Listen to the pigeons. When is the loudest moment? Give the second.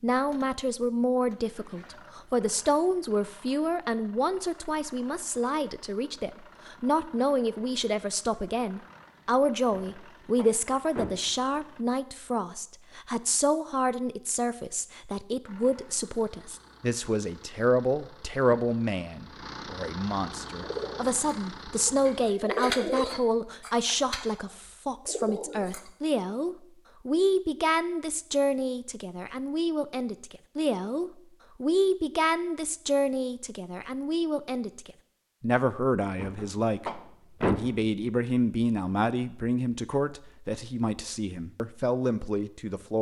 23 s.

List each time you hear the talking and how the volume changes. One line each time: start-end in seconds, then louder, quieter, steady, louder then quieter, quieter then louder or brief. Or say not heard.
0.0-42.9 steady.